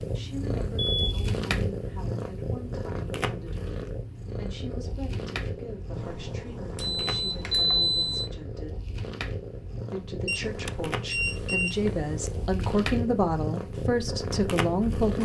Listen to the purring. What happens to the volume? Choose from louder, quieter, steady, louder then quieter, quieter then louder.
quieter then louder.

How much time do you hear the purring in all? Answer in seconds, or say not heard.
15 s.